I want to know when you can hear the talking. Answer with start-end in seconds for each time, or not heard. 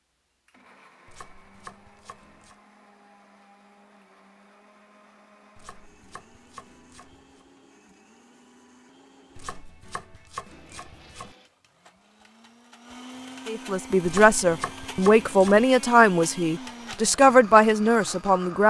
13.4-18.6.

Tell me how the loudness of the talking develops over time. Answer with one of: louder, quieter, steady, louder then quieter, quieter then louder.
steady.